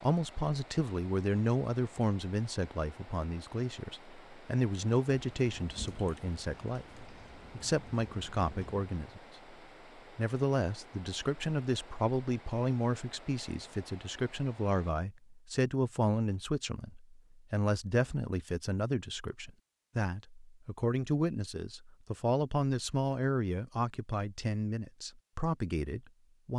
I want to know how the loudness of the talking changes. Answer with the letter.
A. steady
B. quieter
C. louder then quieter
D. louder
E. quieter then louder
A.